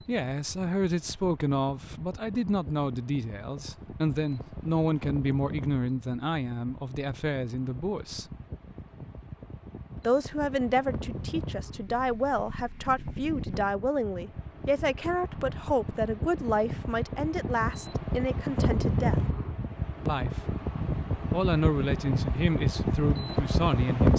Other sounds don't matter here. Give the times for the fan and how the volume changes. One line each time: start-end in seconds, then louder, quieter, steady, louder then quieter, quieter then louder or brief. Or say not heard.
0.0-24.1 louder.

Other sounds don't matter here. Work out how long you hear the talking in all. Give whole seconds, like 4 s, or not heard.
21 s.